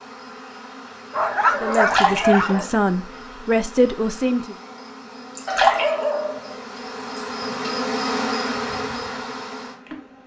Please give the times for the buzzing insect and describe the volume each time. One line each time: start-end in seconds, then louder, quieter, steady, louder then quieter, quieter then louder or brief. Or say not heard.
0.0-10.2 louder.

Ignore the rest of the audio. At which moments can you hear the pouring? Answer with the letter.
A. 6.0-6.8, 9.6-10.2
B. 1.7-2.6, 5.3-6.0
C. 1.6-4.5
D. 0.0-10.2
B.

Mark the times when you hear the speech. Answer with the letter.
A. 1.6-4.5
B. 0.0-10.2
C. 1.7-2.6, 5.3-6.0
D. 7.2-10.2
A.